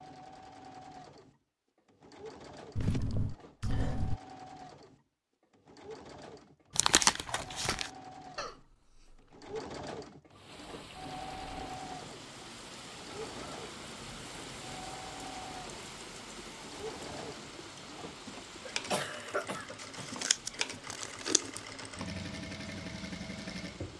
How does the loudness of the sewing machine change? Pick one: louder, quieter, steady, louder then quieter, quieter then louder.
louder.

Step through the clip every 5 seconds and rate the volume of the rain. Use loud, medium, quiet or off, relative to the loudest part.
off, off, loud, loud, medium.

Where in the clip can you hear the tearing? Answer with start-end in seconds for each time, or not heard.
6.8-7.9, 19.8-21.6.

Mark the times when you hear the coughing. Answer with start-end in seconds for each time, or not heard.
2.8-4.2, 8.3-9.3, 18.6-20.1.